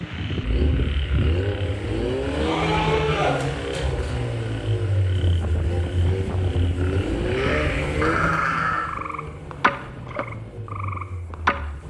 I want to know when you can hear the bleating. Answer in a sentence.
You can hear the bleating from 2.4 to 4.2 s and from 7.3 to 8.9 s.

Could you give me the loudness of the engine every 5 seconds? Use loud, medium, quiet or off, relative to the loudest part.
loud, loud, quiet.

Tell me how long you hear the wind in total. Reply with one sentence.
The wind can be heard for 7 seconds in total.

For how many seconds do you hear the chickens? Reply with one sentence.
You can't hear the chickens here.